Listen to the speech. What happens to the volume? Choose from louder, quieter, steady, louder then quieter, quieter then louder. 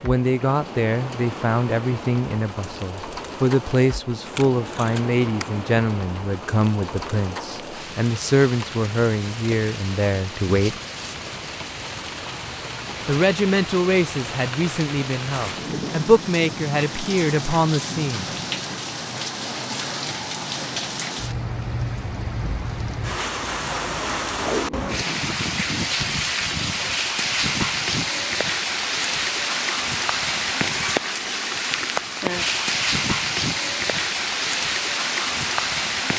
steady.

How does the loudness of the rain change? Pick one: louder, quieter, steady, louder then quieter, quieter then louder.
louder.